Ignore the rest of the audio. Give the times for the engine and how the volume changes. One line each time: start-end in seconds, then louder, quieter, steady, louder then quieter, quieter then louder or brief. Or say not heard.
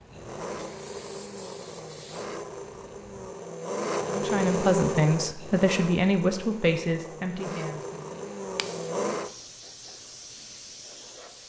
0.0-9.3 louder then quieter.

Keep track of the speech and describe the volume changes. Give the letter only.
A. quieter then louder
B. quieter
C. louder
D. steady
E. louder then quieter
B.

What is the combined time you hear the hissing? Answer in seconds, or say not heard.
6 s.